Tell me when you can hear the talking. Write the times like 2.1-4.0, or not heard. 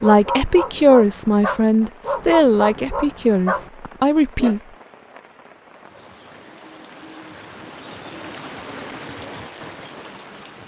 0.0-4.6.